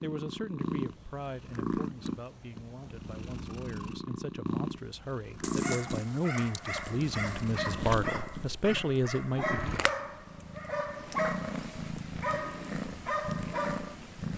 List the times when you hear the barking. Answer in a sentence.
The barking can be heard from 5.4 to 13.9 s.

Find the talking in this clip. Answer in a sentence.
You can hear the talking from 0.0 to 9.8 s.